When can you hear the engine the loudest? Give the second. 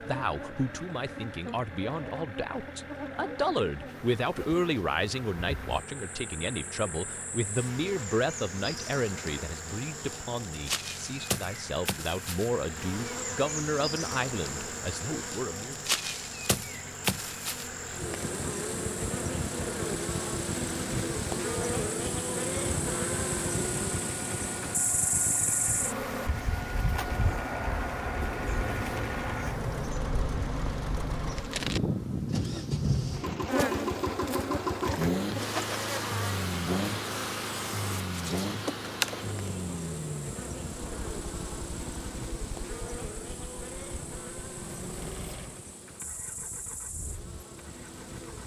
35 s.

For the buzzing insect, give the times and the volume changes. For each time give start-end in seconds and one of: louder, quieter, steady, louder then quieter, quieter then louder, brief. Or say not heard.
0.0-48.4 louder then quieter.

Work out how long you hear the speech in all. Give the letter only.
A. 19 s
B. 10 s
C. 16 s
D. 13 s
C.